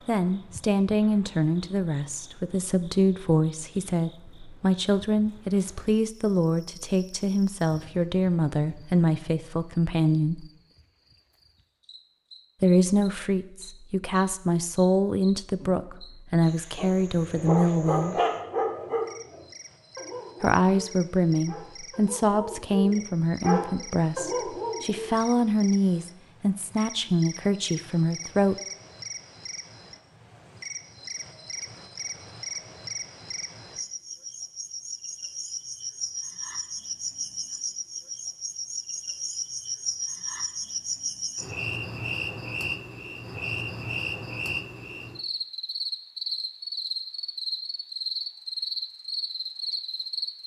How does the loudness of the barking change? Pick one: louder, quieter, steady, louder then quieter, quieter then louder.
quieter then louder.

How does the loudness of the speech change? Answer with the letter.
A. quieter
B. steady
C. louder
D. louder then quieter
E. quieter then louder
B.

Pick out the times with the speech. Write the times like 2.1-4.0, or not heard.
0.1-10.4, 12.6-18.2, 20.4-28.6.